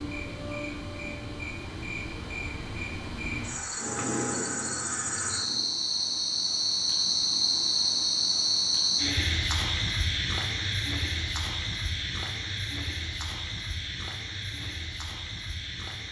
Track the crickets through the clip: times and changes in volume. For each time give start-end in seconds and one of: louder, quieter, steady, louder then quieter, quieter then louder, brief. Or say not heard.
0.0-16.0 louder then quieter.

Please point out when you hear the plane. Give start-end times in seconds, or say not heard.
3.8-5.7.